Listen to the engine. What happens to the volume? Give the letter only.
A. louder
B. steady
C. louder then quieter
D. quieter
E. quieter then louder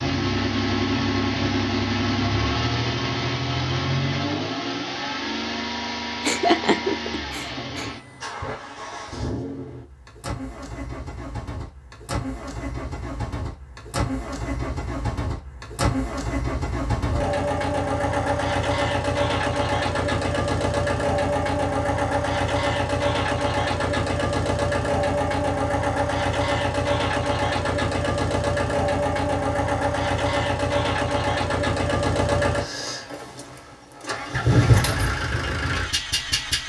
E.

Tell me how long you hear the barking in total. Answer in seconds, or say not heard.
not heard.